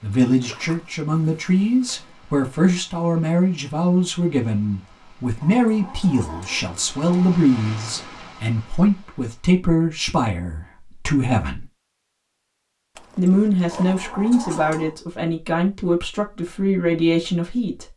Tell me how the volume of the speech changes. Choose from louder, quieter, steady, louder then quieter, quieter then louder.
steady.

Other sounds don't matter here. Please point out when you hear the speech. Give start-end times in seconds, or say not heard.
0.0-11.7, 13.2-17.9.